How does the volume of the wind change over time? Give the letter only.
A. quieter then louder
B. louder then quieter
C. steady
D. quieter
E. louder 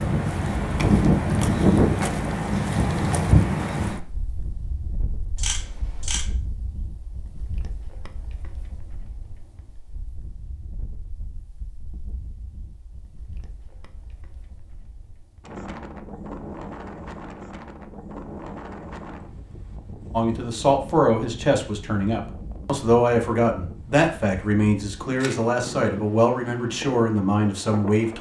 A.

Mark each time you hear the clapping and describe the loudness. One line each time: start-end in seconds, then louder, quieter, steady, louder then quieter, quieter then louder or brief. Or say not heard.
not heard.